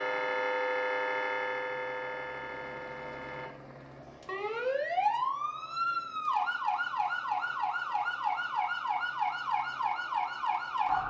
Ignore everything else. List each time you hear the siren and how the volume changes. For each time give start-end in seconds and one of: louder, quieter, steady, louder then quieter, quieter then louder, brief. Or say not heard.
0.0-11.0 quieter then louder.